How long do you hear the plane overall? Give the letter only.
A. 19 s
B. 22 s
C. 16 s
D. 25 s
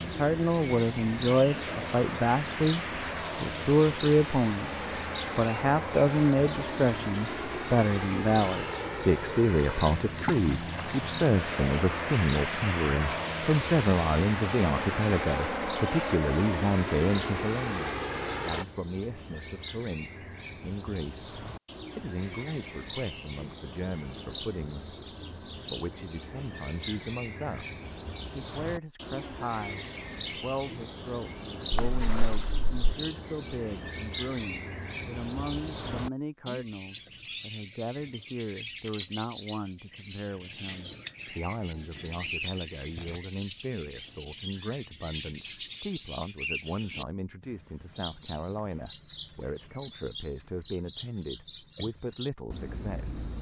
A.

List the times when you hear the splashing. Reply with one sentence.
You can hear the splashing from 10.2 to 11.0 s and from 31.7 to 32.7 s.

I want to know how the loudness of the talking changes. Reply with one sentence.
The volume of the talking goes down.